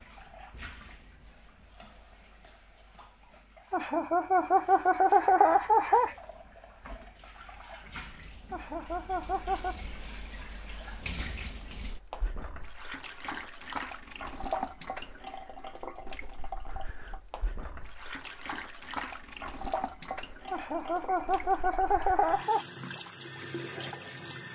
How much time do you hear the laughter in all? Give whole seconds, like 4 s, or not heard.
6 s.